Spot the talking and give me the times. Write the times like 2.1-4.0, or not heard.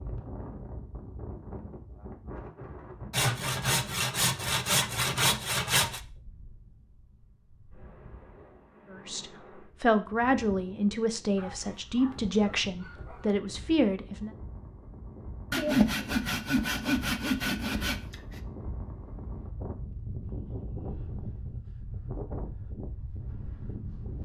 8.9-14.3.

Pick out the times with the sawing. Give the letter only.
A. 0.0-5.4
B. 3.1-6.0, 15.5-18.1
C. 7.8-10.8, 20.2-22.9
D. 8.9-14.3
B.